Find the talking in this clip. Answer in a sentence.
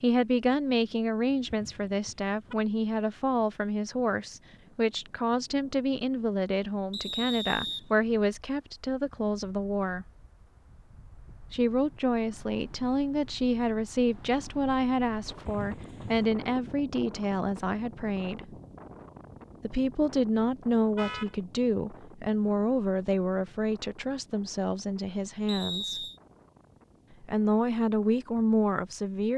The talking can be heard from 0.0 to 10.1 s, from 11.5 to 18.5 s, from 19.6 to 26.1 s and from 27.2 to 29.3 s.